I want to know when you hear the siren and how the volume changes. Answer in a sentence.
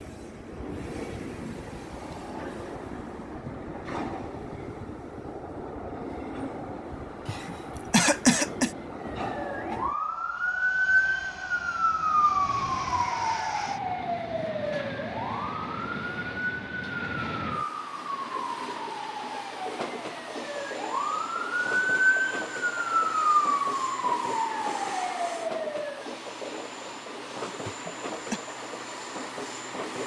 You can hear the siren from 9.2 to 26.1 s, getting quieter then louder.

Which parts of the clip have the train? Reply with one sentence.
The train can be heard from 0.0 to 30.0 s.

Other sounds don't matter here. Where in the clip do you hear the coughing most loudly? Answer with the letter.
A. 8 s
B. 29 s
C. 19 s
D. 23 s
A.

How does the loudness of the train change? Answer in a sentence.
The volume of the train stays about the same.